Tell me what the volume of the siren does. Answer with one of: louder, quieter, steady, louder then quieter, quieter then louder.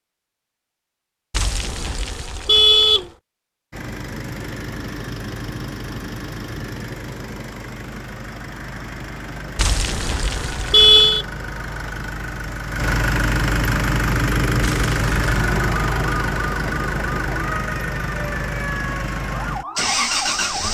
steady.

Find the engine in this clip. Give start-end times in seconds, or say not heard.
3.7-20.6.